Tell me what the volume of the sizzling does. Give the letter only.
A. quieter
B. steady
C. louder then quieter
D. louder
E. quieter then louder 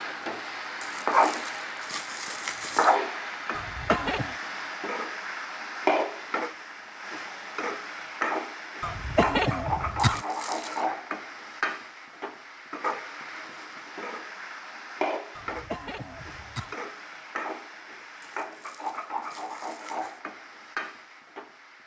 A.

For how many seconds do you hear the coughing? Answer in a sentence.
The coughing can be heard for 4 seconds in total.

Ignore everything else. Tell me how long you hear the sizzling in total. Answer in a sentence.
The sizzling can be heard for 22 seconds in total.